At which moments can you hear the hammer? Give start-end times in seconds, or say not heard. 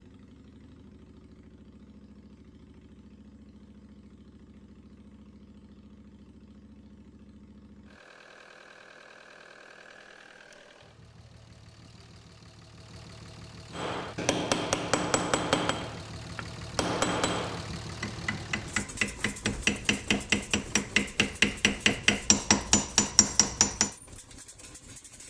13.7-23.9.